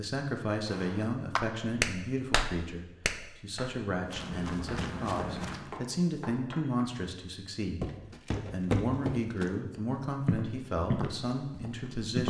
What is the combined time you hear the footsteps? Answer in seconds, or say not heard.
6 s.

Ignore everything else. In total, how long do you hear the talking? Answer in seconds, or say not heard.
12 s.